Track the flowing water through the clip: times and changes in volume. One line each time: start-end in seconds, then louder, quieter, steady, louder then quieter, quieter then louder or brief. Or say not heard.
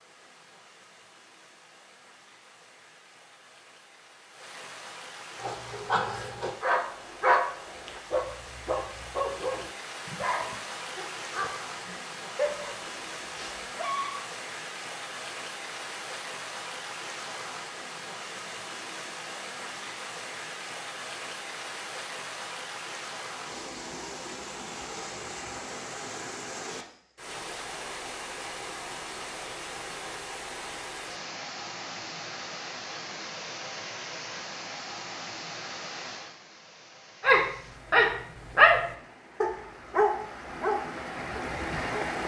0.0-42.2 louder.